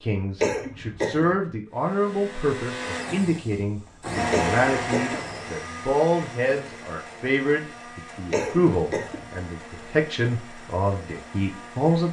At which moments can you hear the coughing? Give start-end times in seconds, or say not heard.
0.4-1.4, 4.3-5.2, 8.3-9.2.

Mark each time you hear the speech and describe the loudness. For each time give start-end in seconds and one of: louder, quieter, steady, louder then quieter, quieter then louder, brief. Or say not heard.
0.0-12.0 steady.